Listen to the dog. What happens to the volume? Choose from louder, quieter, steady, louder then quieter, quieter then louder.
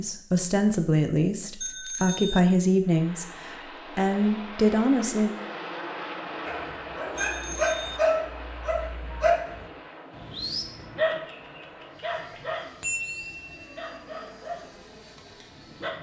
quieter.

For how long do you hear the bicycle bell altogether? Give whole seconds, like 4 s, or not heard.
3 s.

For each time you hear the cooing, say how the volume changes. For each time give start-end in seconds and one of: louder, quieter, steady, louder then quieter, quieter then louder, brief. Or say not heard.
not heard.